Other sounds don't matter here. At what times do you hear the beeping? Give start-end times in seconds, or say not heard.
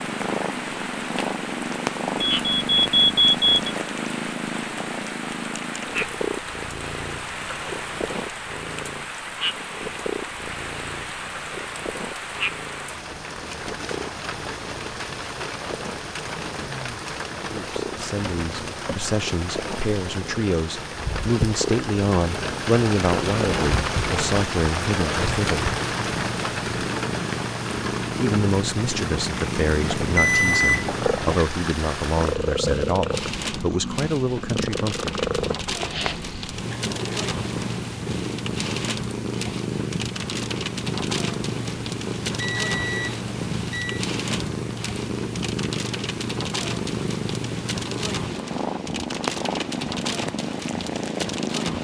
2.2-3.7, 29.9-31.4, 42.4-44.0.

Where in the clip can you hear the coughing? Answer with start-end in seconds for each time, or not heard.
not heard.